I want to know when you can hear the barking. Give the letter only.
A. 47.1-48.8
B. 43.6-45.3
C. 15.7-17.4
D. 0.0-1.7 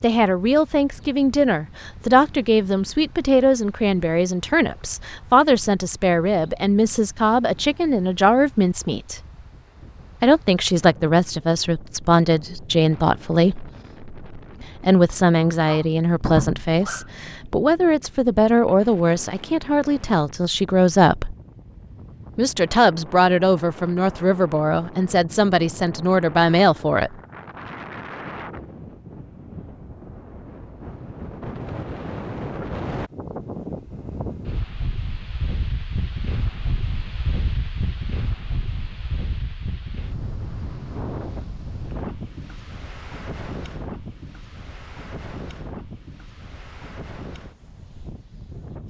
C.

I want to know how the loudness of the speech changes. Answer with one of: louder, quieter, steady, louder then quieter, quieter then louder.
steady.